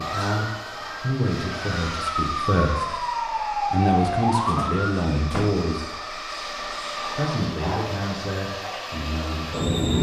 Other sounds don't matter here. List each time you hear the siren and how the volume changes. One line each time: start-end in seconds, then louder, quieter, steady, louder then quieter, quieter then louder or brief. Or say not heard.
0.0-5.2 louder.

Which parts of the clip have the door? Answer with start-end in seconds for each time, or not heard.
4.5-5.7.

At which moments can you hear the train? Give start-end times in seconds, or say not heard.
0.0-9.9.